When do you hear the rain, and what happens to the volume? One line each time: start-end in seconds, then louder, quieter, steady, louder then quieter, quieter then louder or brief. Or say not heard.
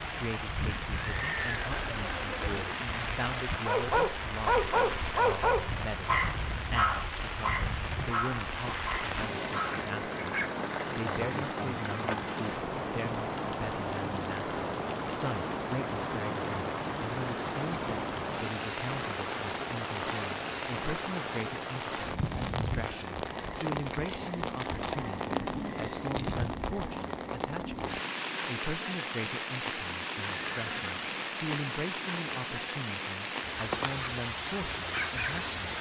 0.0-35.7 steady.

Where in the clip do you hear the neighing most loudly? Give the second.
1 s.